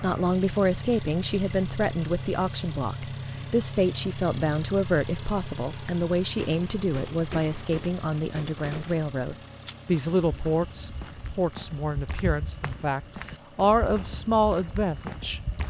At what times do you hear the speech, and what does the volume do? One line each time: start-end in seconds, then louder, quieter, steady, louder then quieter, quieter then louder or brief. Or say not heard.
0.0-15.4 steady.